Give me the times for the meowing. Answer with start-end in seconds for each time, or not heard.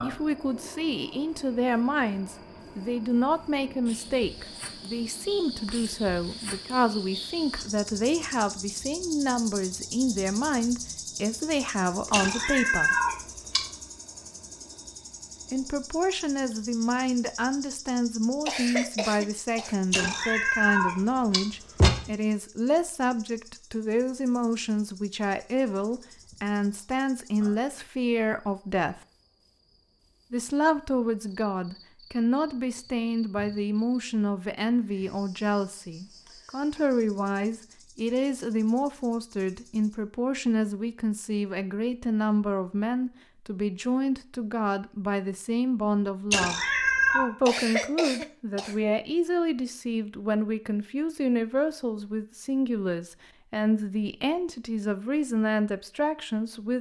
12.1-13.7, 19.9-21.9, 46.3-47.3.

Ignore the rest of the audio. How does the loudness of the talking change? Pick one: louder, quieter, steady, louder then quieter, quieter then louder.
steady.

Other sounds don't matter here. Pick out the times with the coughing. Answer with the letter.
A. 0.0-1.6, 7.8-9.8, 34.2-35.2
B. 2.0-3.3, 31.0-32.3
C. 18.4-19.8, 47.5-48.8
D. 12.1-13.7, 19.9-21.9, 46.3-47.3
C.